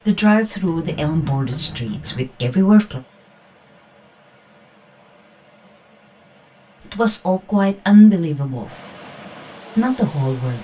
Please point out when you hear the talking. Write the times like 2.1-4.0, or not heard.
0.1-3.0, 6.8-8.7, 9.8-10.5.